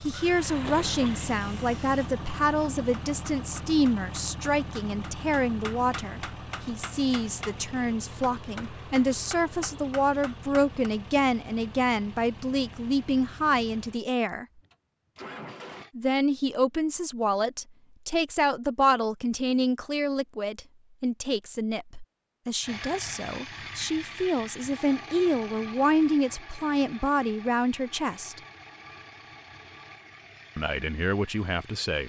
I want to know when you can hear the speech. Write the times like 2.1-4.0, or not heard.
0.0-14.4, 15.9-28.4, 30.6-32.0.